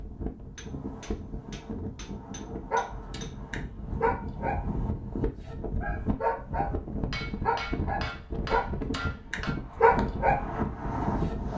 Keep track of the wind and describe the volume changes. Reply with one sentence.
The loudness of the wind goes up.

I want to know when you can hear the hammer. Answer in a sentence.
You can hear the hammer from 0.6 to 3.4 s and from 7.1 to 9.6 s.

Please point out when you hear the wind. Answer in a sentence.
The wind can be heard from 0.0 to 11.5 s.